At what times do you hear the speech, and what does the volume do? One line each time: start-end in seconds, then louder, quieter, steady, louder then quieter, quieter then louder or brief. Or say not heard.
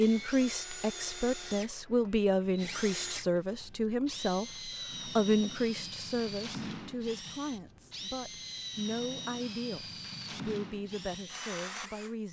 0.0-12.2 quieter.